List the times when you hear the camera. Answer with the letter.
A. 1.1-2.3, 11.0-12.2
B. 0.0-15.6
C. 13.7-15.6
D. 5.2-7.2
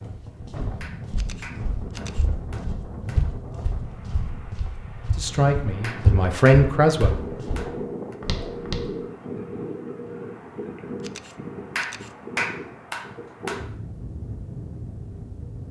A.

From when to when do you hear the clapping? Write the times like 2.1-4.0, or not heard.
0.8-3.2, 5.8-8.2, 11.8-13.6.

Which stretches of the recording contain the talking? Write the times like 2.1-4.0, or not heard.
5.2-7.2.